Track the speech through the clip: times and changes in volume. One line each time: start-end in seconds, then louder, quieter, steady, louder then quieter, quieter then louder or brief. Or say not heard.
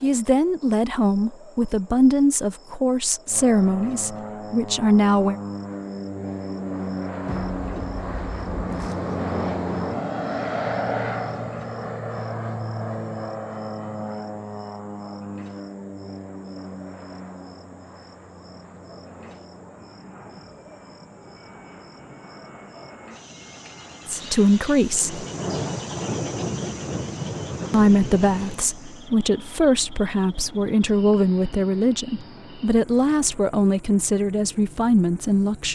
0.0-5.3 steady
24.1-25.2 brief
27.7-35.7 steady.